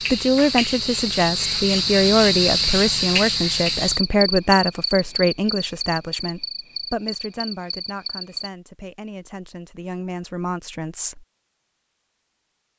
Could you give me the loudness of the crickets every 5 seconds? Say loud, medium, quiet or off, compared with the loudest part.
loud, medium, off.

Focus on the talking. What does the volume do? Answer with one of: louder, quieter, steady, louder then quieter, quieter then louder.
quieter.